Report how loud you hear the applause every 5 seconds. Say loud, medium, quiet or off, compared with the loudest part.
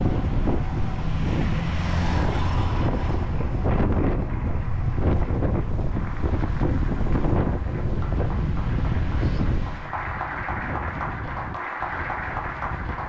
medium, medium, loud.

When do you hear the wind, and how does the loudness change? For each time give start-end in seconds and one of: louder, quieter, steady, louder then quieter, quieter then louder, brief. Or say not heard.
0.0-13.0 quieter.